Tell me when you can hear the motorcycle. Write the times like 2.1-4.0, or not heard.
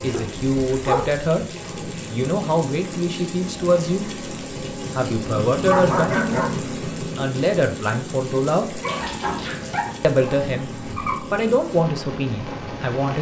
0.0-13.0.